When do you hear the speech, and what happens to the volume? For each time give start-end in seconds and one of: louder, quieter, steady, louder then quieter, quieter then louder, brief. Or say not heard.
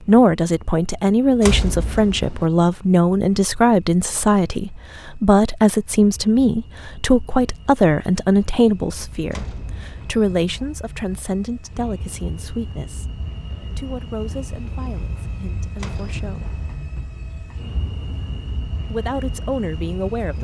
0.1-16.6 quieter
18.9-20.3 brief.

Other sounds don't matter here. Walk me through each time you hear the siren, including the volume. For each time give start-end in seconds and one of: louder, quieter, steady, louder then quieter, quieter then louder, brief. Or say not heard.
not heard.